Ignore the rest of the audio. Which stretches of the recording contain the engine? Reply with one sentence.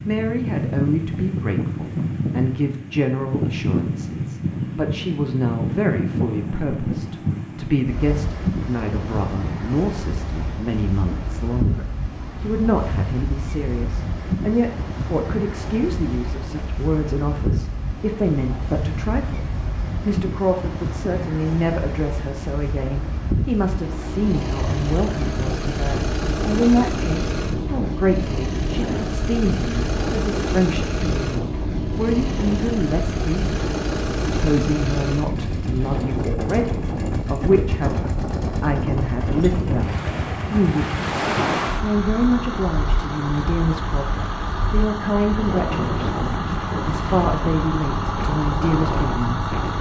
You can hear the engine from 23.7 to 49.7 s.